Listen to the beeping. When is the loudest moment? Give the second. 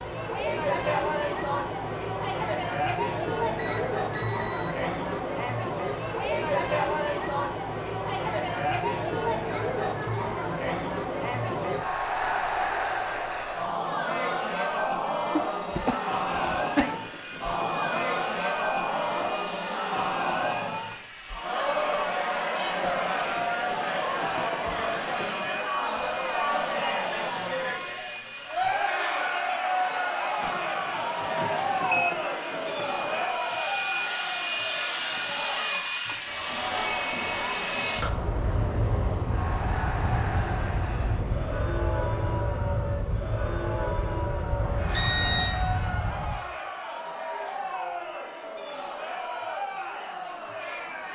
45 s.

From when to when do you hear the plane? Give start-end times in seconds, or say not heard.
16.2-46.4.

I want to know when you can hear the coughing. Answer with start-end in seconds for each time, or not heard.
15.3-17.0.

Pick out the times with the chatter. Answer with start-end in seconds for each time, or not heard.
0.0-51.1.